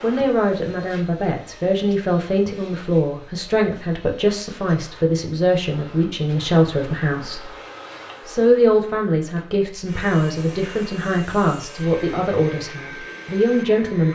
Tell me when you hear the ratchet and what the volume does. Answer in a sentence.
You can't hear the ratchet here.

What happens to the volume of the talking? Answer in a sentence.
The loudness of the talking stays about the same.